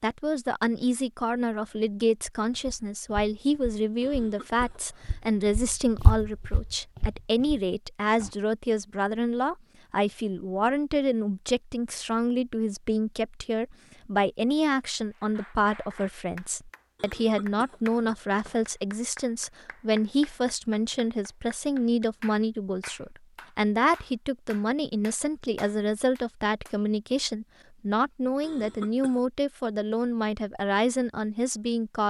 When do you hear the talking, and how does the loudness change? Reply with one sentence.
You can hear the talking from 0.0 to 32.0 s, at a steady volume.